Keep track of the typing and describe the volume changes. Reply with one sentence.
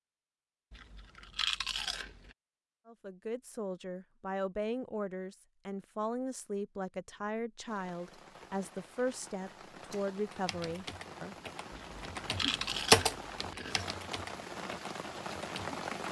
The volume of the typing goes up, then down.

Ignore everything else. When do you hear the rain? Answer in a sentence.
The rain can be heard from 7.7 to 16.0 s.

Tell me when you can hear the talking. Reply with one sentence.
The talking can be heard from 2.9 to 11.3 s.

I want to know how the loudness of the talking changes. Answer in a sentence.
The volume of the talking stays about the same.